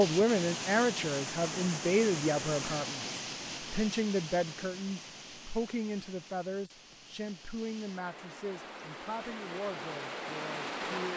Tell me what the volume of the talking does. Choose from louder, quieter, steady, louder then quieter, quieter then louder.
quieter.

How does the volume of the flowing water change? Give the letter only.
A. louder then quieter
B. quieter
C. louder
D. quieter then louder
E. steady
D.